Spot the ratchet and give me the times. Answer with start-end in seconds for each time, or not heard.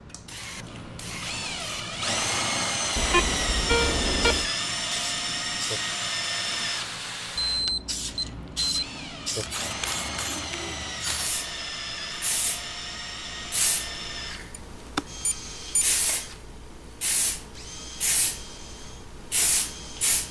not heard.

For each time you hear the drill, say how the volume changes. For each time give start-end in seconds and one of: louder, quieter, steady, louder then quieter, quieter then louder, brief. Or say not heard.
0.0-20.2 quieter.